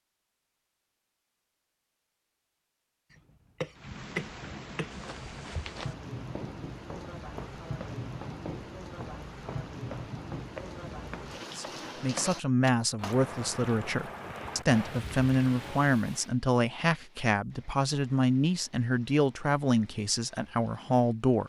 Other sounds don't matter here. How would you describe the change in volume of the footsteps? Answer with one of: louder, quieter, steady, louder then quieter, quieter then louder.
steady.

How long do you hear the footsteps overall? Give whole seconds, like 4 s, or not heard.
7 s.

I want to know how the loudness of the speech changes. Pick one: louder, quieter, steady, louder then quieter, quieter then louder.
steady.